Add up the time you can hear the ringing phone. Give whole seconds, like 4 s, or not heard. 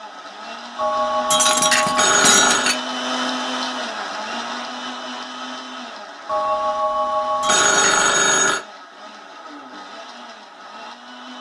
4 s.